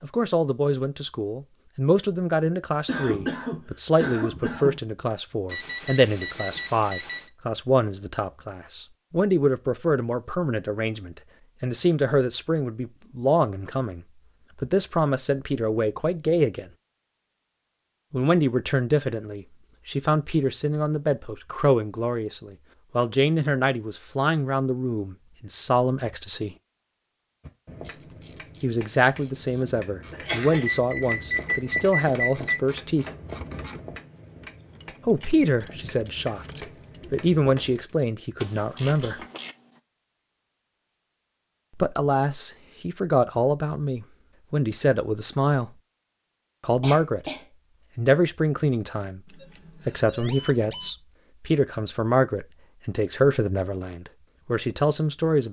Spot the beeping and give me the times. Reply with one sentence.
The beeping can be heard from 5.5 to 7.3 s, from 30.6 to 32.6 s and from 49.2 to 50.9 s.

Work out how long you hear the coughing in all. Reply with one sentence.
The coughing can be heard for 3 seconds in total.